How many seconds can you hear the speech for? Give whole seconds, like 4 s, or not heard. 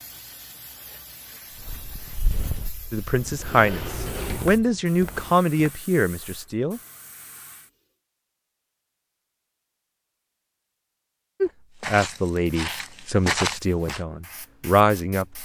8 s.